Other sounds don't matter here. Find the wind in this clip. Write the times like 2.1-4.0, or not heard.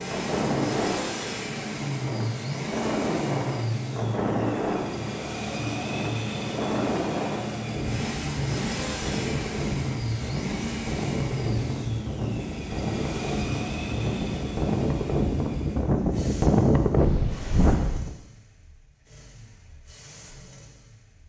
0.0-18.1.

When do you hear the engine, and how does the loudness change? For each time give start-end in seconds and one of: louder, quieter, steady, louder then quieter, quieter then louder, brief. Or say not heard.
0.0-21.2 quieter.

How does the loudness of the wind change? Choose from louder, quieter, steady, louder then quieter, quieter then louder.
louder.